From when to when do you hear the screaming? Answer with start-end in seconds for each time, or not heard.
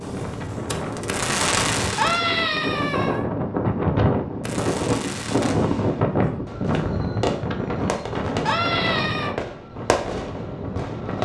1.9-3.2, 8.4-9.3.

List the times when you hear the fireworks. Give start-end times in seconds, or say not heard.
0.0-2.4, 4.4-11.2.